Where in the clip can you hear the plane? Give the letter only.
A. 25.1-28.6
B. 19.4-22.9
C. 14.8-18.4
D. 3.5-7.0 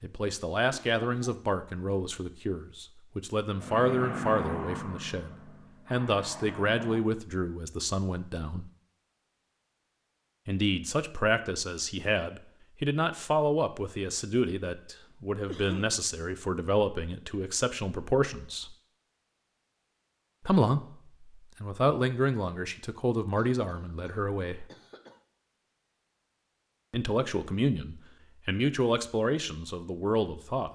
D.